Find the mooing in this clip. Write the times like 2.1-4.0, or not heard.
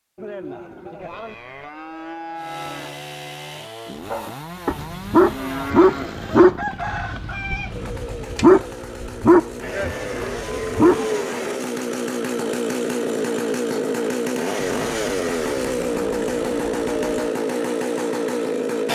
0.1-3.0, 4.8-6.5, 9.6-11.6, 14.7-17.4.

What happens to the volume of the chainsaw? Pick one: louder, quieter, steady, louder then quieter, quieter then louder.
louder.